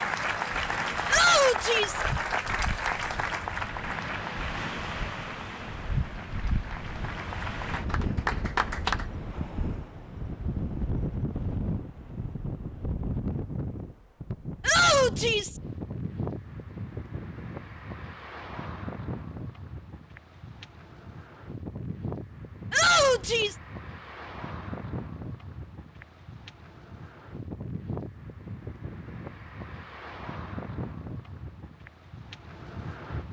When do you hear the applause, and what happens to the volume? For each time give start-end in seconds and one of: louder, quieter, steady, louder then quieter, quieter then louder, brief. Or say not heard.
0.0-9.1 quieter then louder.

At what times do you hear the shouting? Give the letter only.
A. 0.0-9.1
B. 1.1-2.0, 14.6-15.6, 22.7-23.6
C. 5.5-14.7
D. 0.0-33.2
B.